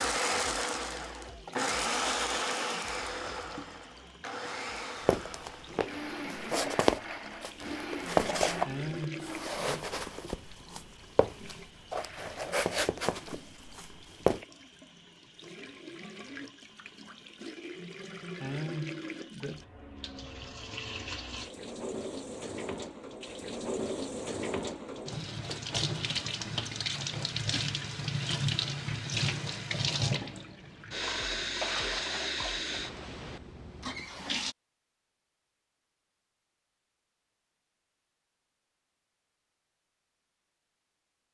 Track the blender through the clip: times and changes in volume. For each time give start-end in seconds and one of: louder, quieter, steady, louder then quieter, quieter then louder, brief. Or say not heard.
0.0-8.7 quieter.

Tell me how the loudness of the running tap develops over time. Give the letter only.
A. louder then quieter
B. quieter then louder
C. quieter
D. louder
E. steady
D.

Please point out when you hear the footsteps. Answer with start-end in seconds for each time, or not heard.
5.0-14.4.